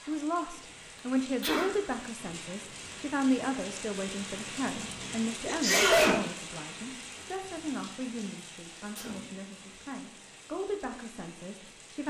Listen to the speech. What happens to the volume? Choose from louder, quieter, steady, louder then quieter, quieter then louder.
quieter.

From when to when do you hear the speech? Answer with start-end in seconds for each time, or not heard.
0.0-12.0.